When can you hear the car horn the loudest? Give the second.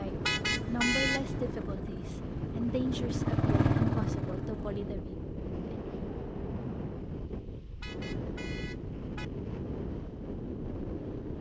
1 s.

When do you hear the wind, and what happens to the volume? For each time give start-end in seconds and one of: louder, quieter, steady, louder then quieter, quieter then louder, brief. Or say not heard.
0.0-11.3 steady.